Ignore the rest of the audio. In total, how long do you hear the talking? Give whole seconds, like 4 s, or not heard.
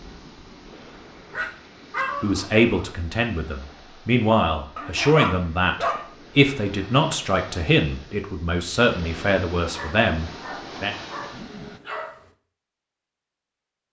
9 s.